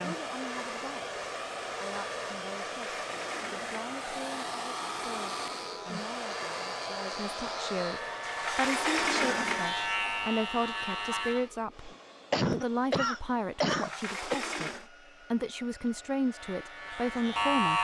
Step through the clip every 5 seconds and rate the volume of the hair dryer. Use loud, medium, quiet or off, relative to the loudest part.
loud, loud, quiet, quiet.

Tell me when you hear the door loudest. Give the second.
9 s.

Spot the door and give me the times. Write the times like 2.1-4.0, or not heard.
2.7-3.9, 8.2-10.0, 13.7-14.9.